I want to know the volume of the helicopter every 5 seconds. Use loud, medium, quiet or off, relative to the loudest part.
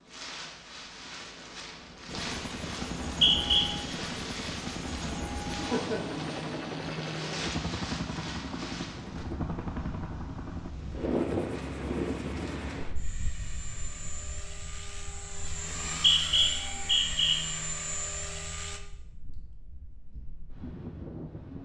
loud, loud, medium, loud, off.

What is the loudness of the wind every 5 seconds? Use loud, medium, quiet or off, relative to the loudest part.
medium, medium, loud, quiet, medium.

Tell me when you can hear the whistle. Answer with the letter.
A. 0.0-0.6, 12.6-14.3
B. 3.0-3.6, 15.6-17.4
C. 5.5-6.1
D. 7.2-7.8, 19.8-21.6
B.